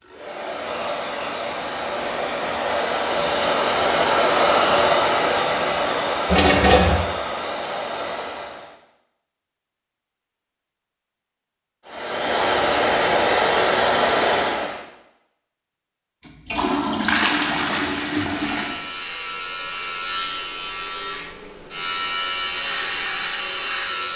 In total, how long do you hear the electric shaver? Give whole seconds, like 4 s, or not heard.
6 s.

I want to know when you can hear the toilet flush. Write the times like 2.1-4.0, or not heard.
6.2-7.0, 16.2-18.8.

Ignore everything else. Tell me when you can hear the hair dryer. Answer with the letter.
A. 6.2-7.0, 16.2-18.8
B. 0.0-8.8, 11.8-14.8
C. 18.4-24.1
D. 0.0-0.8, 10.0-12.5
B.